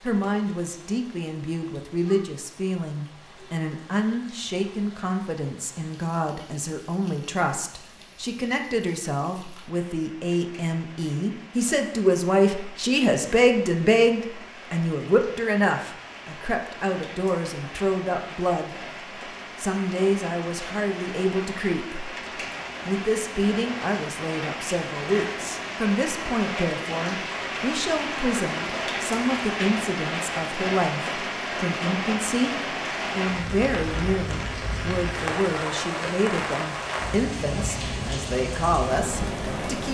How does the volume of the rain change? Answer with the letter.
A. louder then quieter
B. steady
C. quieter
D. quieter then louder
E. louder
E.